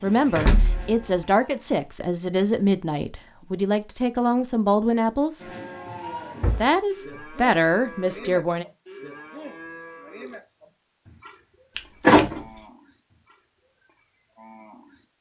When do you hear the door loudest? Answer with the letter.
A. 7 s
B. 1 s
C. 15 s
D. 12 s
D.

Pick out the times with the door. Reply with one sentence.
You can hear the door from 0.3 to 1.2 s, from 5.8 to 7.2 s and from 11.8 to 12.4 s.